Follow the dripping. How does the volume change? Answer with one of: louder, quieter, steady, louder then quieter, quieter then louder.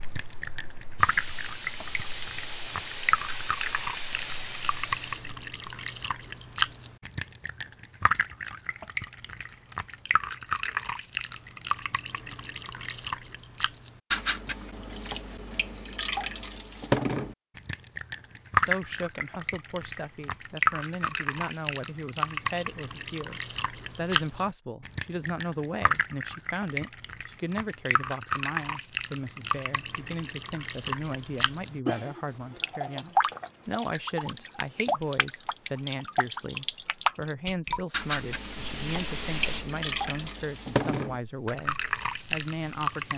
steady.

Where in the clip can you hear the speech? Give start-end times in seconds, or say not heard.
18.6-43.1.